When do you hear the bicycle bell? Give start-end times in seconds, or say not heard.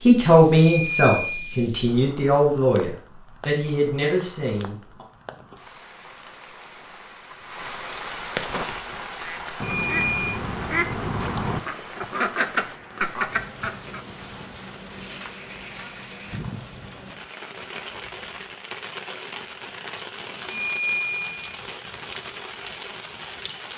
0.6-1.6, 9.6-10.4, 20.4-21.6.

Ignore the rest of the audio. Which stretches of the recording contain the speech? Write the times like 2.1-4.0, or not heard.
0.1-5.0.